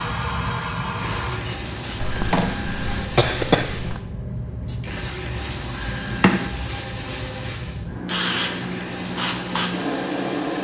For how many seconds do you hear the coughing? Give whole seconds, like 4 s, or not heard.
2 s.